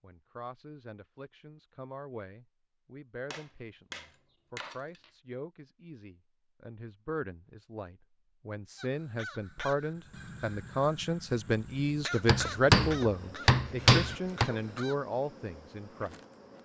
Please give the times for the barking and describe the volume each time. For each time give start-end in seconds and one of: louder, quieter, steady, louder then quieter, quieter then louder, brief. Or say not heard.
not heard.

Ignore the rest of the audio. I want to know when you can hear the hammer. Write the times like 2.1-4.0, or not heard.
3.3-5.1, 12.2-14.5.